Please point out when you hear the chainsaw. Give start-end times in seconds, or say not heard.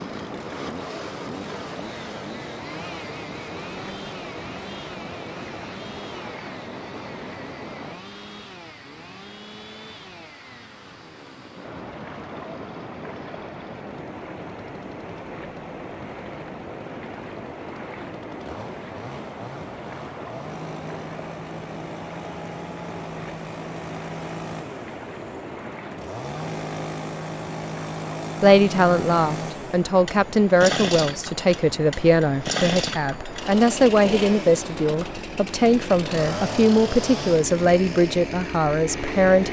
0.0-39.4.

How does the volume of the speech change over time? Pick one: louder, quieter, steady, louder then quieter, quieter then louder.
steady.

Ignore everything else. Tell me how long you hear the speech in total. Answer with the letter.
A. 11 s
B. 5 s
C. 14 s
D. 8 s
A.